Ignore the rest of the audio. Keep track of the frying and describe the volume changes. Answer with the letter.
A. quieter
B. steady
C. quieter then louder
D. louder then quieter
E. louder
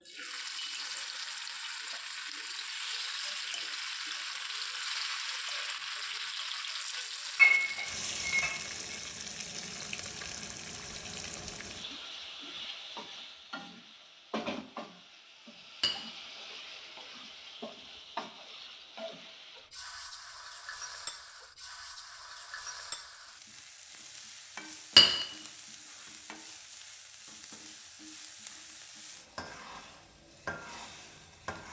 A.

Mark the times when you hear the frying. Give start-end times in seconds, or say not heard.
0.0-31.6.